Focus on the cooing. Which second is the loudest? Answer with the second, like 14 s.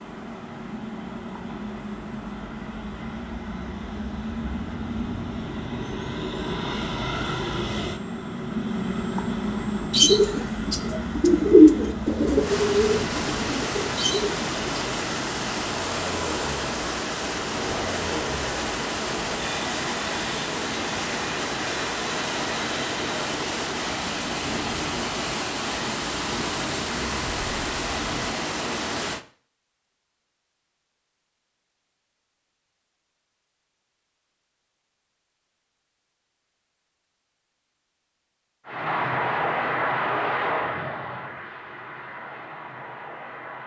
12 s.